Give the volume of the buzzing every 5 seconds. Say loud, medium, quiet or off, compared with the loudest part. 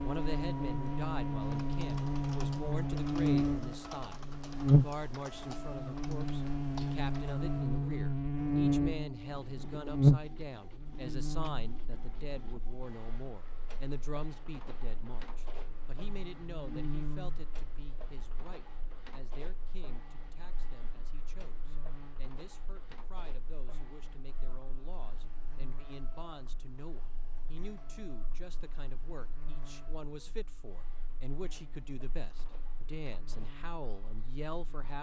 loud, medium, loud, quiet, quiet, quiet, quiet.